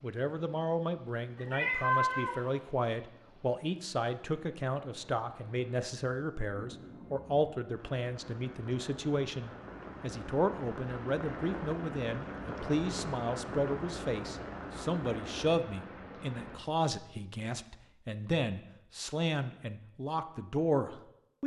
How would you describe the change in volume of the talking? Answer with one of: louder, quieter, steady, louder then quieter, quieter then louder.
steady.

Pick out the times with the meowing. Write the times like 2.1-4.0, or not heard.
1.4-2.4.